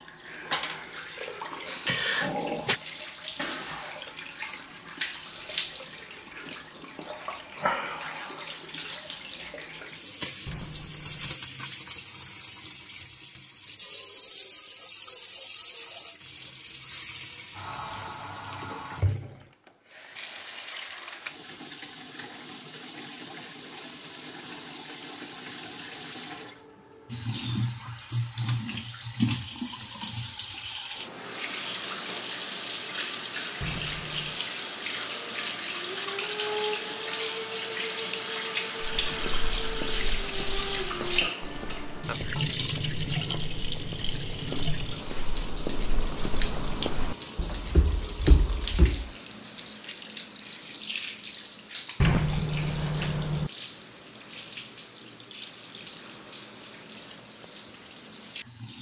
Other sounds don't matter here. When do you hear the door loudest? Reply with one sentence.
The volume of the door peaks at 52 seconds.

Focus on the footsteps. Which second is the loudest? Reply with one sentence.
The volume of the footsteps peaks at 48 seconds.